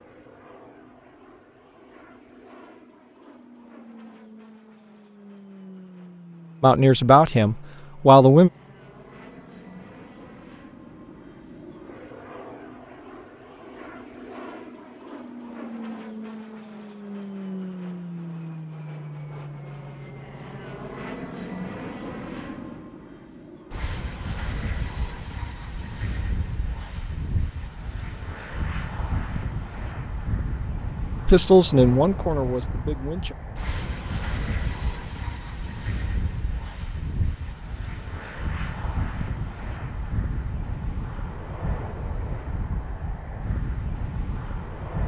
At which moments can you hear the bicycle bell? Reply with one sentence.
You can't hear the bicycle bell here.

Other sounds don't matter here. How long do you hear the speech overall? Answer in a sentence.
You can hear the speech for 4 seconds altogether.